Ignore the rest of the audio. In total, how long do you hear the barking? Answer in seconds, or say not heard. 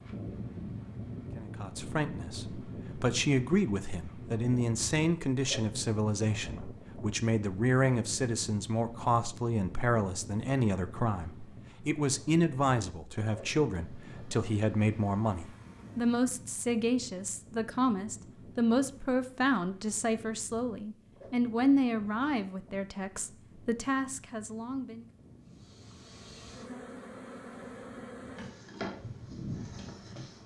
not heard.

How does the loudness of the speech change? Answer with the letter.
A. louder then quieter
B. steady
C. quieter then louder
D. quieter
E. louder
B.